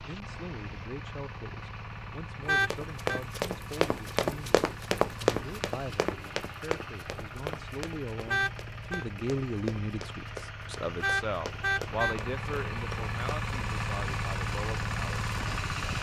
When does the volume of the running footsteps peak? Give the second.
5 s.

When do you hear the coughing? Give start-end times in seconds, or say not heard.
not heard.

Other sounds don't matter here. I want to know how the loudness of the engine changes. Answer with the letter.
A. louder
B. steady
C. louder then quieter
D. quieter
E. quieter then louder
A.